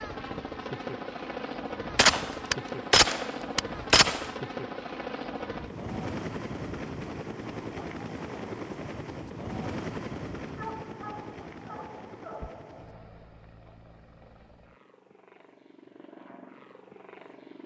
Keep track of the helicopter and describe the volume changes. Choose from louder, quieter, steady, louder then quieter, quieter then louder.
quieter.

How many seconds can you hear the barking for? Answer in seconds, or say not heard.
3 s.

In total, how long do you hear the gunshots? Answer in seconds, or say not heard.
2 s.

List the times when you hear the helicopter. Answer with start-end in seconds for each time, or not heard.
0.0-17.6.